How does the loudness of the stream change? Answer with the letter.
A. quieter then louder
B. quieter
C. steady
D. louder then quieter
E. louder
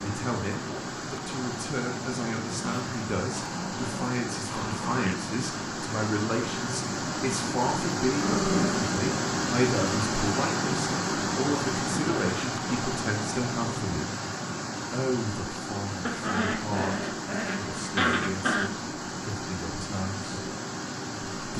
D.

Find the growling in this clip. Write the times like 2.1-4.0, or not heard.
2.6-5.2, 8.1-8.9, 16.1-18.7.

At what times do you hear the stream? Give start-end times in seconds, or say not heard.
0.0-21.5.